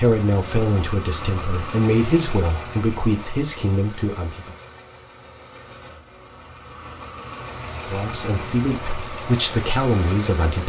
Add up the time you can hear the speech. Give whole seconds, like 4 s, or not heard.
7 s.